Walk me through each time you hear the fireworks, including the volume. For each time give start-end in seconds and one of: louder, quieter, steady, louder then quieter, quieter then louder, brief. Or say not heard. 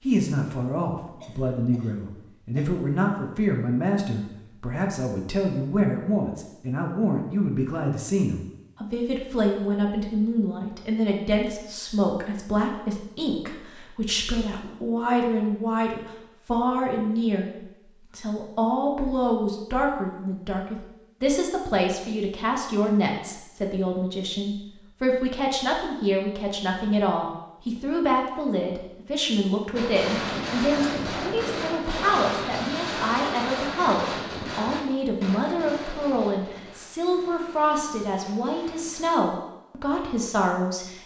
29.8-39.2 quieter.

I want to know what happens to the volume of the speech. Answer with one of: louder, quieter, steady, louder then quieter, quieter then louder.
steady.